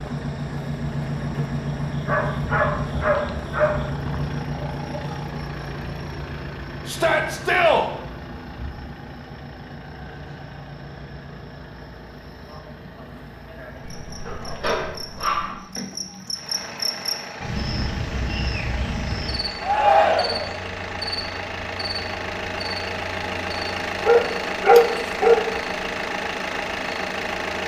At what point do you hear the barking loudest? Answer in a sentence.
The volume of the barking peaks at 25 seconds.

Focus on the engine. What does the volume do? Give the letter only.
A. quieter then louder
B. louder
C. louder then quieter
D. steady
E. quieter
A.